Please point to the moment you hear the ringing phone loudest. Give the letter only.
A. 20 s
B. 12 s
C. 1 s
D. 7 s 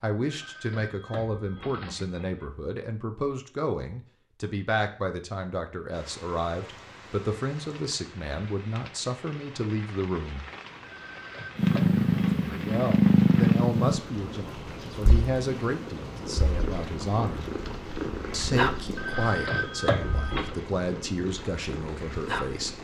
A.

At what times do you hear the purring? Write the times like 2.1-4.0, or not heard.
11.6-22.7.